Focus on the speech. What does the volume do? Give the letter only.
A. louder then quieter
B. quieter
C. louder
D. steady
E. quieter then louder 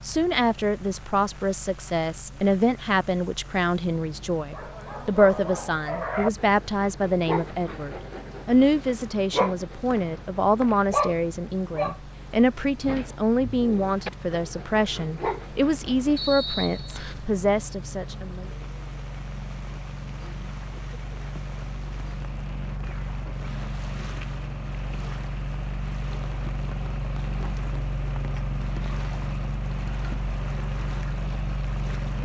D.